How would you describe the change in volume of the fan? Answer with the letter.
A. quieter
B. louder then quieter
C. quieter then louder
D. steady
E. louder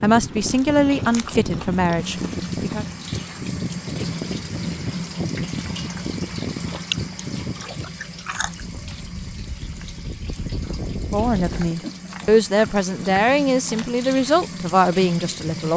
D.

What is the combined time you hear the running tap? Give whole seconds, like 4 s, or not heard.
14 s.